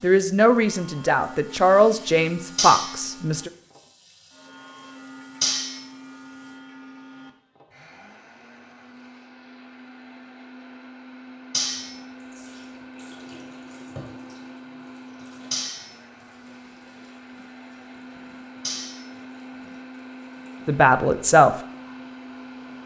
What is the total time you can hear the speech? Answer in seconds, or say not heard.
4 s.